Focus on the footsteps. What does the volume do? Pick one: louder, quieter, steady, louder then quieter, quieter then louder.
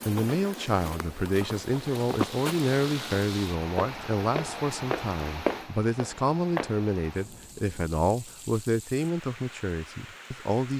louder.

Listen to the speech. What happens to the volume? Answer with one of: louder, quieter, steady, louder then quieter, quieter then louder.
steady.